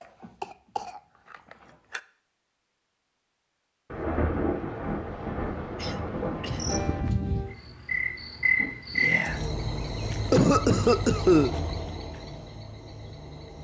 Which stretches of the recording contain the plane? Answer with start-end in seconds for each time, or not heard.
not heard.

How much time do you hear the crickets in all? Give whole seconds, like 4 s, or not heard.
7 s.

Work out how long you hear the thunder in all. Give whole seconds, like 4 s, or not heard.
3 s.